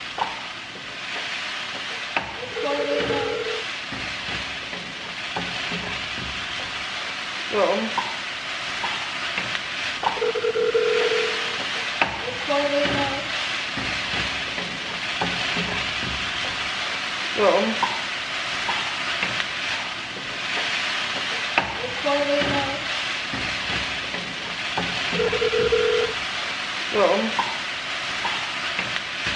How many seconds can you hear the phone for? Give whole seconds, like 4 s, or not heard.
4 s.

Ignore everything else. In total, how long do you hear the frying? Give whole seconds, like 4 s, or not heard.
29 s.